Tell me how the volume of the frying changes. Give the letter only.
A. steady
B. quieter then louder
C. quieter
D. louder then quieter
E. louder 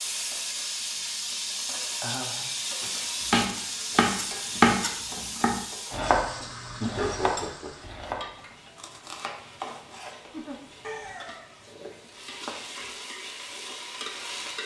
B.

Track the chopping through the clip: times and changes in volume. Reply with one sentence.
The chopping can be heard from 2.8 to 12.7 s, getting quieter.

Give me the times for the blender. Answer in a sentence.
You can't hear the blender here.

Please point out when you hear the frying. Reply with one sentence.
The frying can be heard from 0.0 to 14.6 s.